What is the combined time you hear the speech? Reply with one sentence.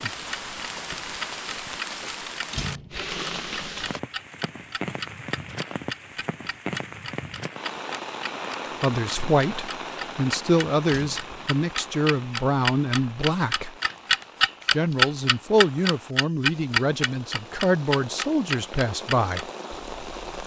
The speech can be heard for 10 seconds in total.